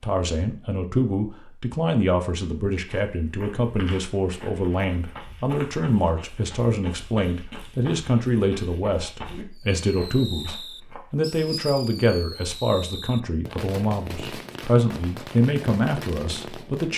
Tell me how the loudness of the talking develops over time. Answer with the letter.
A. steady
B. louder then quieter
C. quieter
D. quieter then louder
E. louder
A.